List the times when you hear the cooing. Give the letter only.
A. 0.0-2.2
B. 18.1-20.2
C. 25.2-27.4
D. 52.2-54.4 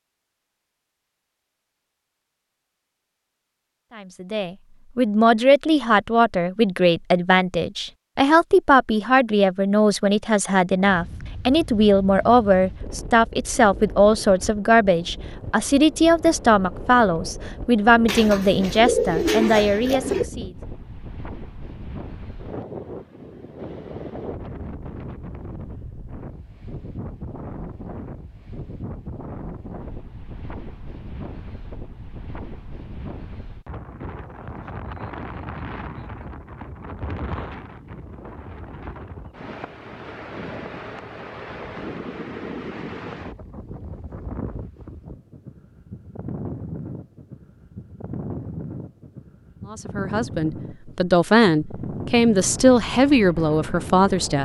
B.